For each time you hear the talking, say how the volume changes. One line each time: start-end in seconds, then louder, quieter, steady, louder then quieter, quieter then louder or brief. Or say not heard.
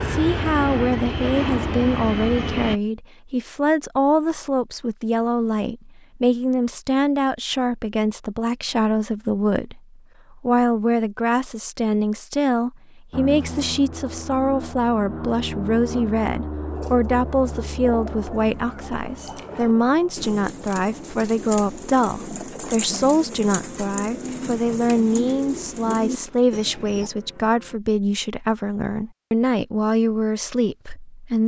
0.1-31.4 steady.